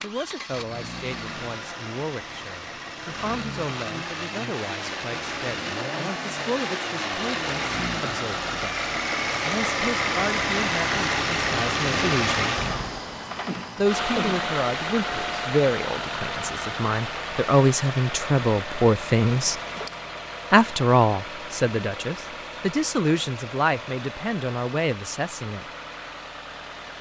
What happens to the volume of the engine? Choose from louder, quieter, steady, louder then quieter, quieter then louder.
louder then quieter.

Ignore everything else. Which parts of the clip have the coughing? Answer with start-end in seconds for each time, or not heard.
13.4-14.5.